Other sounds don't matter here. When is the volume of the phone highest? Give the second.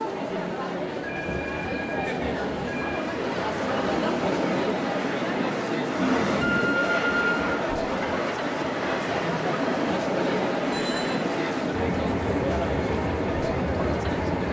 7 s.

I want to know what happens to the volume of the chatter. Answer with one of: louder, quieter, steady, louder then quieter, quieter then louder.
steady.